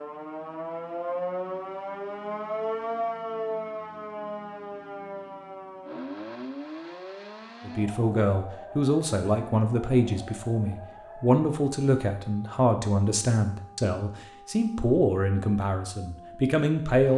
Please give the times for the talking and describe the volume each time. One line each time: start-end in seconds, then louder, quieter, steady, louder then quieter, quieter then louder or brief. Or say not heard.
7.7-17.1 steady.